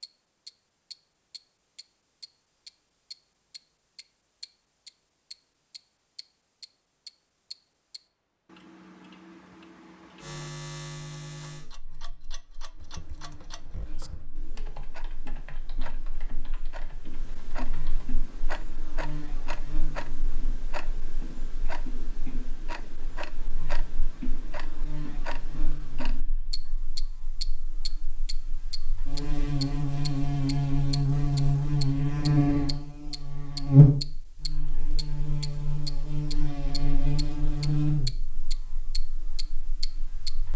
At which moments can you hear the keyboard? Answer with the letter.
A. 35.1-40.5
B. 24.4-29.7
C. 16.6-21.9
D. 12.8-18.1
D.